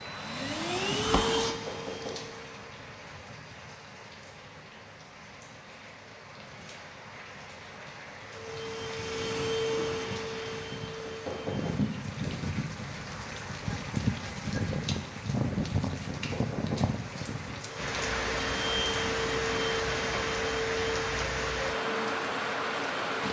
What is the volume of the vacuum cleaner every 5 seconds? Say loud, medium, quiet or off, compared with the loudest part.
loud, loud, medium, loud, loud.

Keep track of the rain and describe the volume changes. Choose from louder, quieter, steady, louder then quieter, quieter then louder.
louder.